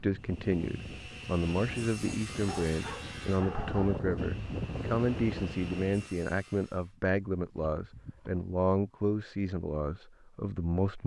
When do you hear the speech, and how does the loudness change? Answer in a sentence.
The speech can be heard from 0.0 to 11.0 s, at a steady volume.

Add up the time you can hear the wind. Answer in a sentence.
The wind can be heard for 6 seconds in total.